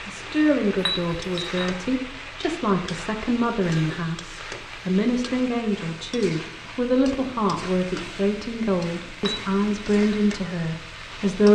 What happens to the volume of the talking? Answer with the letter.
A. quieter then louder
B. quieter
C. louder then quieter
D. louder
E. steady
E.